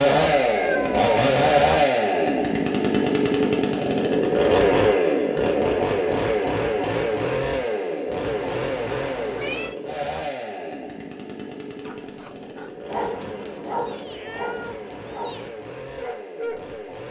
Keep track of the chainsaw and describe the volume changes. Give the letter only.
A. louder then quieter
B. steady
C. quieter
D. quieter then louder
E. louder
C.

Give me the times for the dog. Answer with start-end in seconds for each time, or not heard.
11.8-16.8.